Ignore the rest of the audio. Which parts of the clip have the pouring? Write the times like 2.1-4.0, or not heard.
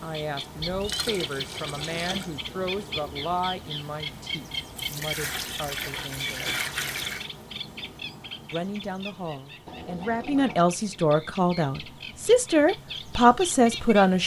0.6-2.3, 4.8-7.2, 9.7-10.7.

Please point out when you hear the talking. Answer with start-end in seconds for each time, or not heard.
0.0-6.6, 8.5-14.2.